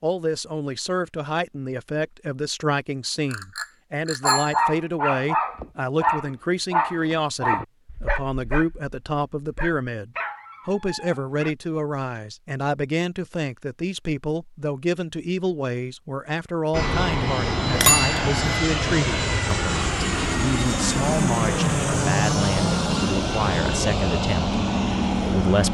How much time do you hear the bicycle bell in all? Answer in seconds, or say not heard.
2 s.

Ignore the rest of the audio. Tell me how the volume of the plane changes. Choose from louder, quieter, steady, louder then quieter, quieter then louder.
steady.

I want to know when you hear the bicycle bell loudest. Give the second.
18 s.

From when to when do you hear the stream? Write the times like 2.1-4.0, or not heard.
not heard.